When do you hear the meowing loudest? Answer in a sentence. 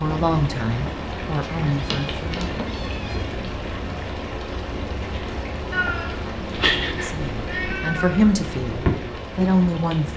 The volume of the meowing peaks at 7 seconds.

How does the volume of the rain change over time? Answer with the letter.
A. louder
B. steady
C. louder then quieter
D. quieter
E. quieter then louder
B.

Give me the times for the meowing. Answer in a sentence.
You can hear the meowing from 1.6 to 3.3 s and from 5.7 to 8.2 s.